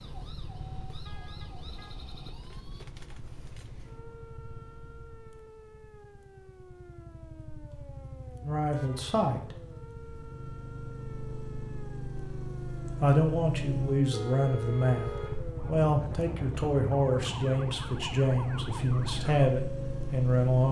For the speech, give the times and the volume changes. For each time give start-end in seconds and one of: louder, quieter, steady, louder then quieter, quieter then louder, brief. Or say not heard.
8.4-9.6 brief
13.0-20.6 steady.